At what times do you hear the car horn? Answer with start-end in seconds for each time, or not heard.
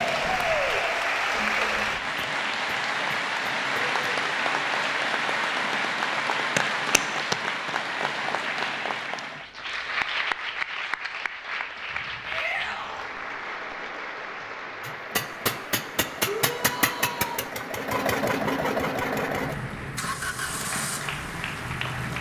not heard.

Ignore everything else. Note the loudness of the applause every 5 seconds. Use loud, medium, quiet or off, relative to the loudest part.
loud, loud, medium, quiet, medium.